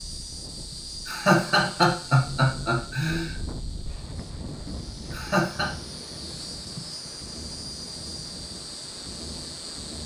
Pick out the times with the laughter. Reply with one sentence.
You can hear the laughter from 1.1 to 3.4 s and from 5.1 to 5.7 s.